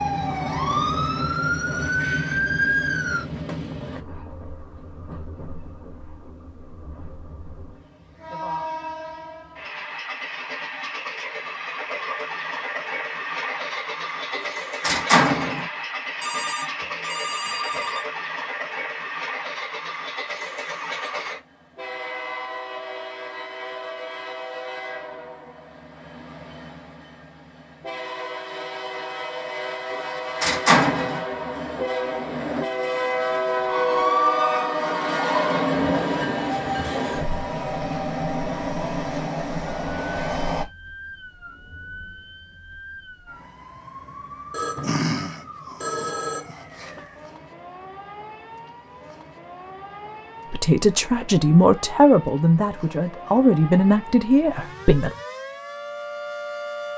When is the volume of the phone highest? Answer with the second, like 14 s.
45 s.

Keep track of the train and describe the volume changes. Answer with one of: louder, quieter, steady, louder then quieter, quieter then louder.
louder.